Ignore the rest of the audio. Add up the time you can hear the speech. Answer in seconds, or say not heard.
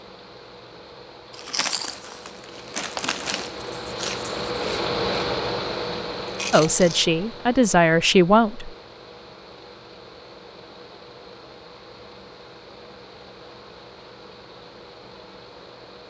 2 s.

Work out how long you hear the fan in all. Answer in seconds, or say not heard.
16 s.